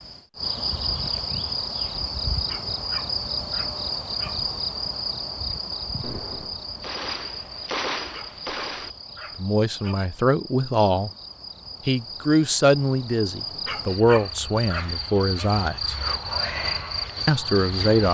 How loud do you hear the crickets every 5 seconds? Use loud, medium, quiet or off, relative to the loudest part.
loud, medium, medium, loud.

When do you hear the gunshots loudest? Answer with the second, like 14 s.
8 s.